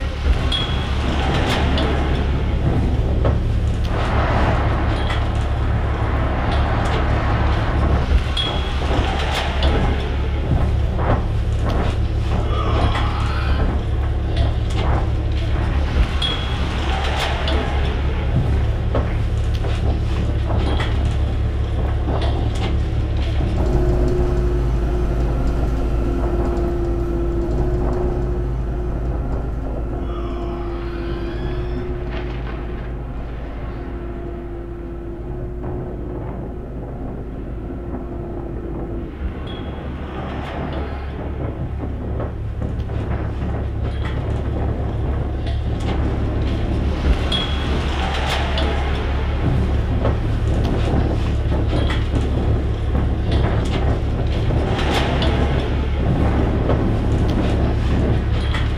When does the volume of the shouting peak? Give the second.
13 s.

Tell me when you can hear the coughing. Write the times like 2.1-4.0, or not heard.
not heard.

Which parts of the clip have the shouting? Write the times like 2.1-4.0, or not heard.
12.3-13.7, 29.9-31.9, 40.0-41.1.